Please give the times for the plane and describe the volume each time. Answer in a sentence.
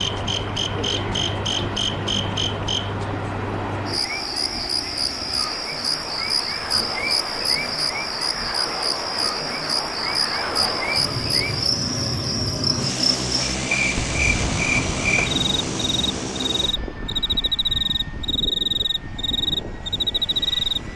You can hear the plane from 0.1 to 20.9 s, getting louder then quieter.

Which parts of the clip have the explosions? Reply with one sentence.
You can hear the explosions from 13.9 to 16.6 s.